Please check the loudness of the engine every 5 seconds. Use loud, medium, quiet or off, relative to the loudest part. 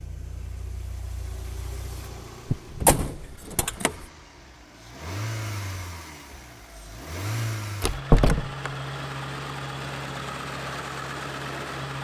quiet, loud, loud.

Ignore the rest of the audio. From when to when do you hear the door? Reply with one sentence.
You can hear the door from 2.5 to 4.0 s and from 7.8 to 8.7 s.